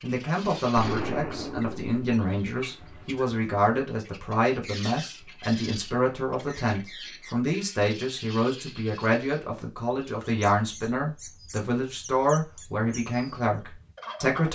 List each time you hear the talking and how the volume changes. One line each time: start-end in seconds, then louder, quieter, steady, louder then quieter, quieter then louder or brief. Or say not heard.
0.0-14.5 steady.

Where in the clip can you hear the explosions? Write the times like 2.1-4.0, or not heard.
0.8-1.9.